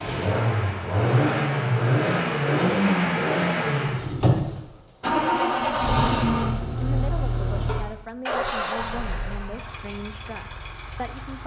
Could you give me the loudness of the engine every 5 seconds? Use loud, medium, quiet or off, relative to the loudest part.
loud, loud, quiet.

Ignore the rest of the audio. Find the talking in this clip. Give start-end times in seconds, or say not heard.
6.8-11.4.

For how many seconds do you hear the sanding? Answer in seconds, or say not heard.
not heard.